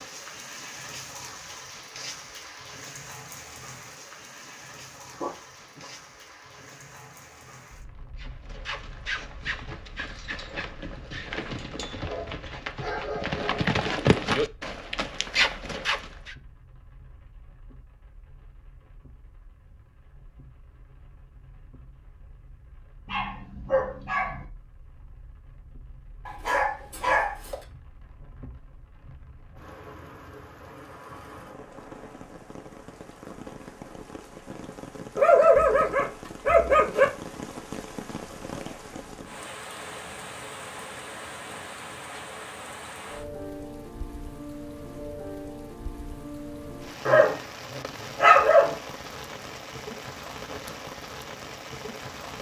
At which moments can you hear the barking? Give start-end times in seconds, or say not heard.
5.2-5.9, 12.0-13.7, 23.1-24.4, 26.2-27.6, 35.1-37.0, 47.0-48.8.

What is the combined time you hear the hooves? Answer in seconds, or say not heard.
8 s.